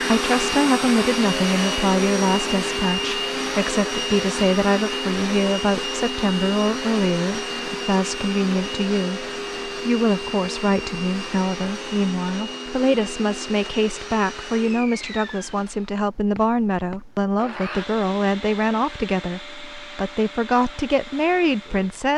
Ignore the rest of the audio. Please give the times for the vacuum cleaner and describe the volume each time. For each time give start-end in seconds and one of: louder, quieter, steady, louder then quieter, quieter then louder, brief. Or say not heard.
0.0-22.1 quieter.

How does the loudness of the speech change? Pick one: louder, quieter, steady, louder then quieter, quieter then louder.
steady.